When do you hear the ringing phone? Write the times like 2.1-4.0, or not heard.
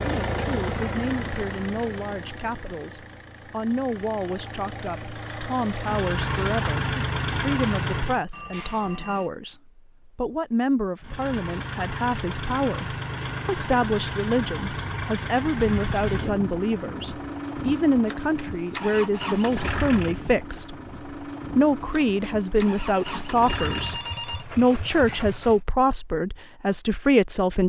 8.3-9.3, 23.4-25.2.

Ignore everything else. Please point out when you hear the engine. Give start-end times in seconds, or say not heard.
0.0-8.2, 11.0-25.6.